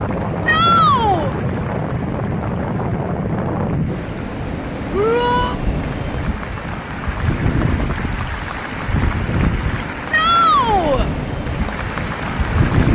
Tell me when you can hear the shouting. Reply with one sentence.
You can hear the shouting from 0.5 to 1.4 s, from 4.9 to 5.5 s and from 10.1 to 11.1 s.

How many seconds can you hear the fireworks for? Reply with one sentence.
The fireworks can't be heard in this clip.